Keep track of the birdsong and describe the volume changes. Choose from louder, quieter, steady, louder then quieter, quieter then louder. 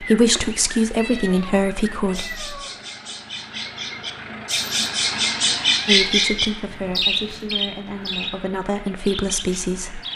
louder then quieter.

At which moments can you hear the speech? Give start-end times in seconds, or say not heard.
0.0-2.5, 5.8-10.0.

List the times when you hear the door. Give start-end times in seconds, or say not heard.
not heard.